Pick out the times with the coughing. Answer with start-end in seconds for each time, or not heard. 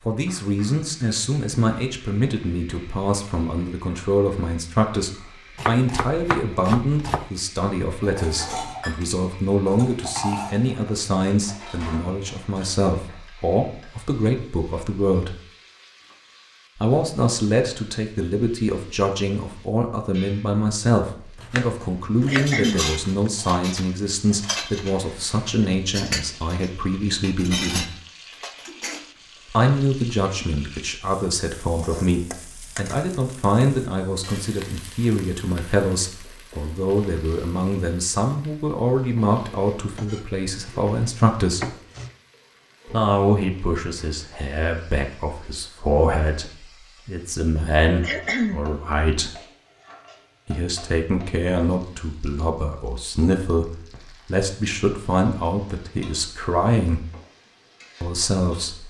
22.2-22.9, 48.0-48.6.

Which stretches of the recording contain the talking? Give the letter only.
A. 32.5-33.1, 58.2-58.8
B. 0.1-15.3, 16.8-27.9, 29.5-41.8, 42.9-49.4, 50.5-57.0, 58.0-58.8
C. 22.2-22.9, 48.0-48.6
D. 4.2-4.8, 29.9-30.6
B.